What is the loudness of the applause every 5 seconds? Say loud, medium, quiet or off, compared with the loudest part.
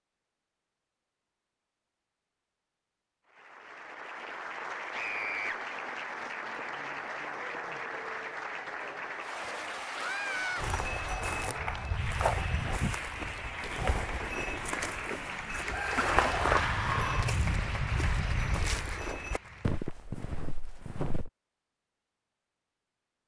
loud, loud, loud, loud, off.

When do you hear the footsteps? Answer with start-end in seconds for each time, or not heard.
10.6-21.3.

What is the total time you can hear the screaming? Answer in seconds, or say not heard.
3 s.